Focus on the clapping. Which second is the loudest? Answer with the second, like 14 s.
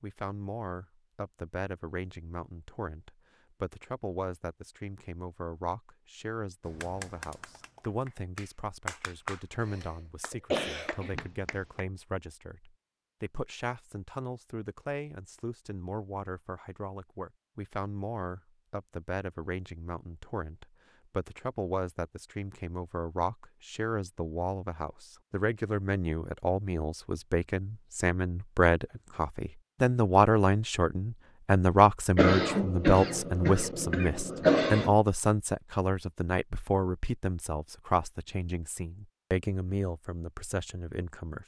9 s.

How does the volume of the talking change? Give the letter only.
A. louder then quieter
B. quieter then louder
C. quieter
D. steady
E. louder
E.